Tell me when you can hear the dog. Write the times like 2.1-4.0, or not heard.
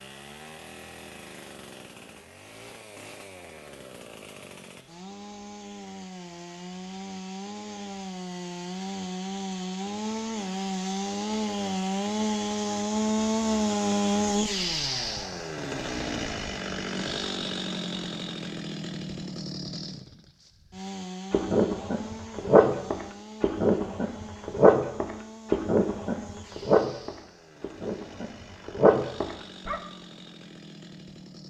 21.3-29.8.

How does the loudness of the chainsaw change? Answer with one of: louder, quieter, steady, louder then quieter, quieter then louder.
louder then quieter.